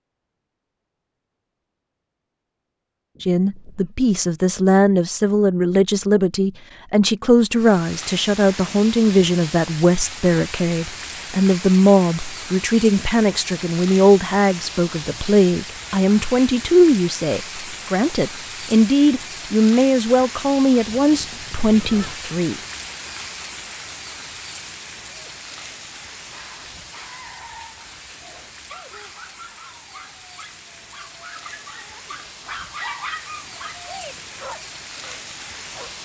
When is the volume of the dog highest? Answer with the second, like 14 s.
33 s.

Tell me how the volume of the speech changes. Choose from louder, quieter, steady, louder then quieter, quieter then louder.
steady.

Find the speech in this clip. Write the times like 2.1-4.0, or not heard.
3.2-22.6.